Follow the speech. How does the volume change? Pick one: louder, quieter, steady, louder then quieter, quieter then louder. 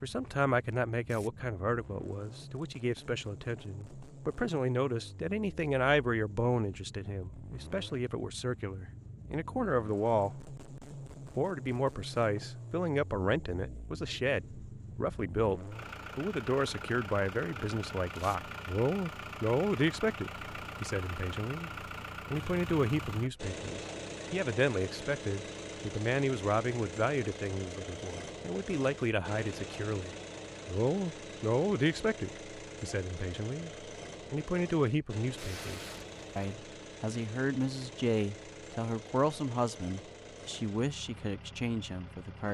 steady.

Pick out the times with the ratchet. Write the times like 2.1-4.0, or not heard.
not heard.